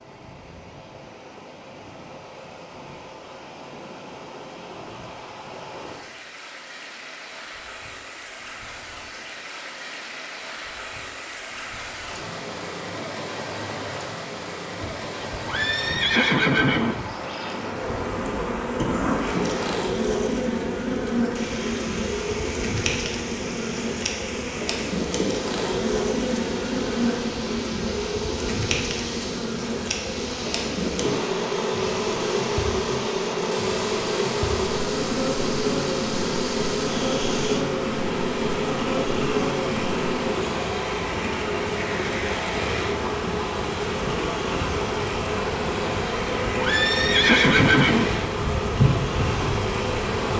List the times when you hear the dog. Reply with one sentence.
The dog can't be heard in this clip.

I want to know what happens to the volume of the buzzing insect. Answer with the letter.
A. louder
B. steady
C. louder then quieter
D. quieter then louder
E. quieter
B.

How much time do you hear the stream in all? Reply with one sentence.
The stream can be heard for 50 seconds in total.